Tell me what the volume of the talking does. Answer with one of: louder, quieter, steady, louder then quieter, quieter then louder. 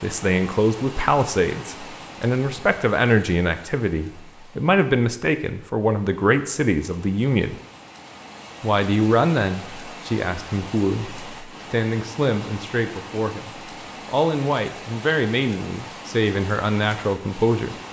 steady.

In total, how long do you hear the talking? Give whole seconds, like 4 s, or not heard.
17 s.